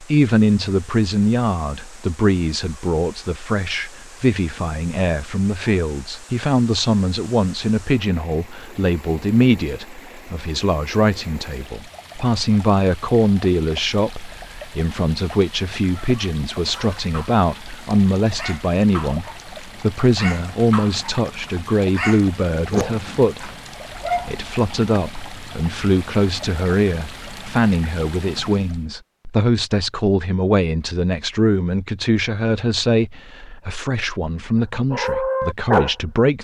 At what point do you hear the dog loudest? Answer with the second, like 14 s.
36 s.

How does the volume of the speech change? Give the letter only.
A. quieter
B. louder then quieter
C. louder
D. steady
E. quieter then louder
D.